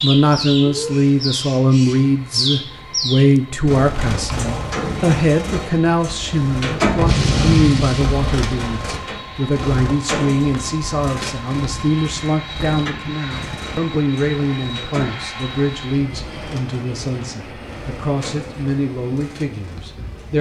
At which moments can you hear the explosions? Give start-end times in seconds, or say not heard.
7.0-9.0.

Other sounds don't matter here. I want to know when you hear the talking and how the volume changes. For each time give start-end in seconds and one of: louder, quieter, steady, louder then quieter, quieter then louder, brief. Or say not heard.
0.0-20.3 quieter.